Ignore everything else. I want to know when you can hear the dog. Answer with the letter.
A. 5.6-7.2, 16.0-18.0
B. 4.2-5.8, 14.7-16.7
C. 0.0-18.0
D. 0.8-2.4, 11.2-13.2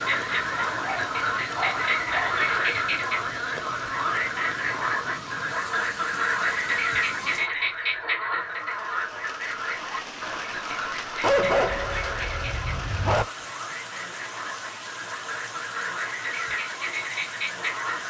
D.